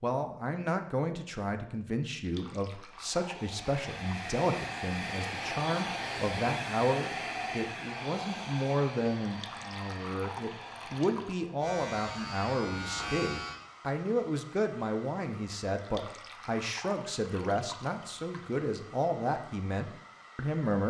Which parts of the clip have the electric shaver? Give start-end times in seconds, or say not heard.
11.6-13.6.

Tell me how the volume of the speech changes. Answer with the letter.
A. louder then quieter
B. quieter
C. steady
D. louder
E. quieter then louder
C.